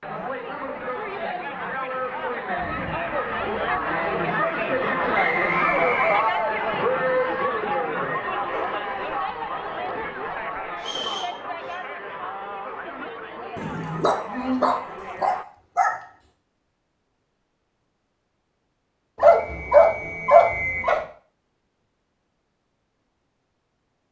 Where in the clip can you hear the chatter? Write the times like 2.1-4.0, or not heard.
0.0-15.4.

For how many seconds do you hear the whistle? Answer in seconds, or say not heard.
4 s.